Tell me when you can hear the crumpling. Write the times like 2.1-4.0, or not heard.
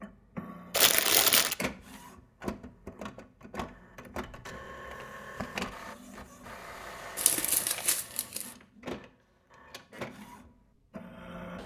0.7-1.6, 7.2-8.5.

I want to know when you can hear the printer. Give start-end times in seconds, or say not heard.
0.0-11.6.